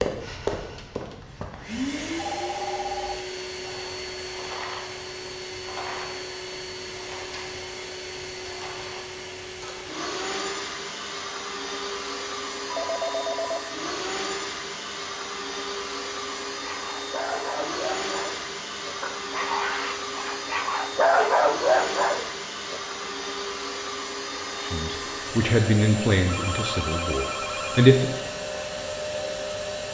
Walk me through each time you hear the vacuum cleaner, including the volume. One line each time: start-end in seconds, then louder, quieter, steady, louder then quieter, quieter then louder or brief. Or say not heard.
0.0-29.8 steady.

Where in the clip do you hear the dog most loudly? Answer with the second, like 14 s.
21 s.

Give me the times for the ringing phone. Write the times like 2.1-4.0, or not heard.
2.1-3.2, 12.7-13.7, 26.2-27.9.